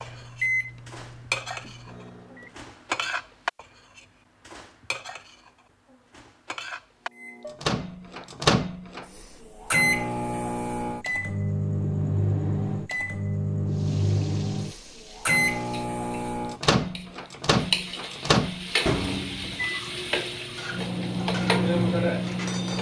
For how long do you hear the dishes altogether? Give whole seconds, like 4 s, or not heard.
10 s.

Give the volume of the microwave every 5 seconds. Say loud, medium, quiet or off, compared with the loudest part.
medium, loud, loud, loud, loud.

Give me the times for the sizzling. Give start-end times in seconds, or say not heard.
13.7-22.7.